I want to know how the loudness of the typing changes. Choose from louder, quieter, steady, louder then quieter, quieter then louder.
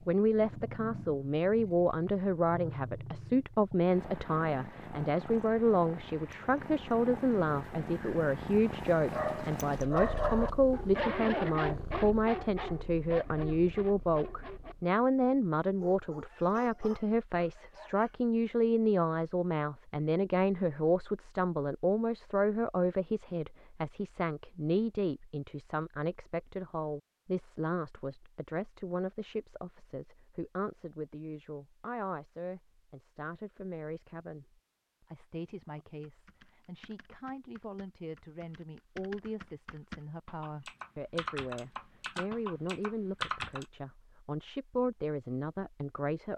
louder.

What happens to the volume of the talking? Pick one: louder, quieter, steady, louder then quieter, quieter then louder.
quieter.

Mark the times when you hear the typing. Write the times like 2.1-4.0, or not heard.
35.8-43.6.